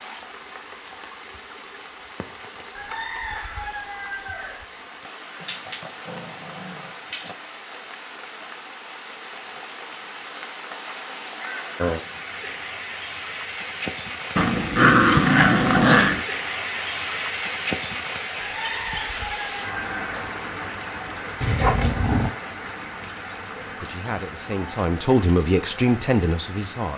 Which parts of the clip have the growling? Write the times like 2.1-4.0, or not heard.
5.4-7.3, 14.3-16.2, 21.4-22.3.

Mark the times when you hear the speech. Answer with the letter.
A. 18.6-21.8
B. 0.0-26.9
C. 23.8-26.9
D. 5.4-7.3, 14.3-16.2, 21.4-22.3
C.